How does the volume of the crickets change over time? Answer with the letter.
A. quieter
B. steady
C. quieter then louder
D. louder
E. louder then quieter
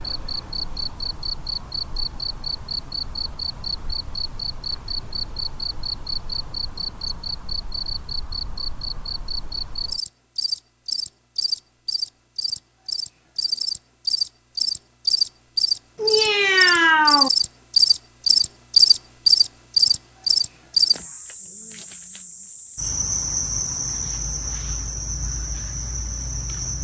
E.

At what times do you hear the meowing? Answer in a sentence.
The meowing can be heard from 15.9 to 17.3 s.